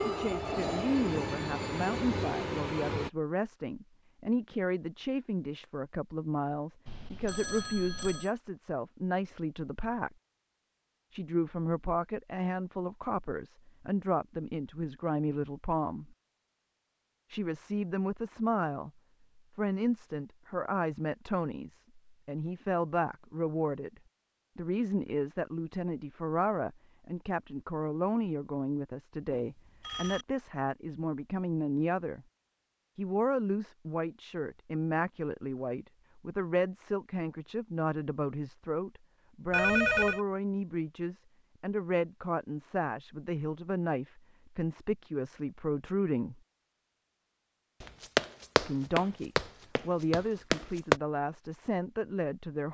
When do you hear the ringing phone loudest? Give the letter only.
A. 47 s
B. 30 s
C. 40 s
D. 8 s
C.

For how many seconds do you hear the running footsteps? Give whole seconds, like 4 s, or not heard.
3 s.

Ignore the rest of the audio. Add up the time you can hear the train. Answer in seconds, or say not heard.
3 s.